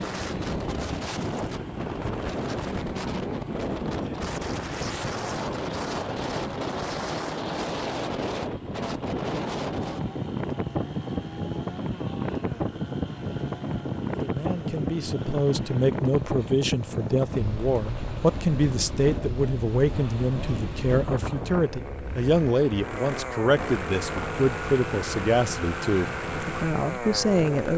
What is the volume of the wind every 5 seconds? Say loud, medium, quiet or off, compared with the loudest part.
loud, loud, loud, loud, medium, medium.